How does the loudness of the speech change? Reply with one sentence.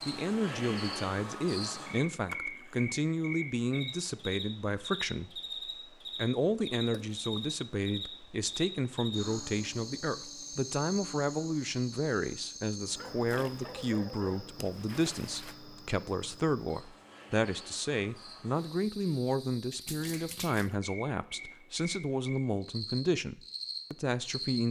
The volume of the speech stays about the same.